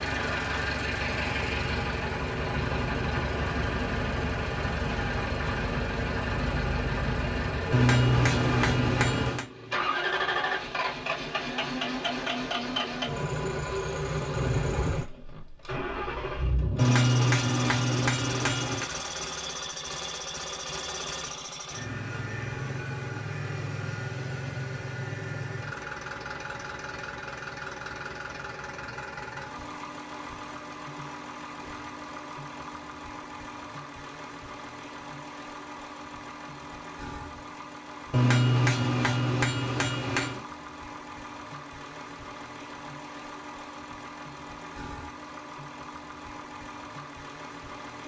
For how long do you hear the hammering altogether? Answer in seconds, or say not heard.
6 s.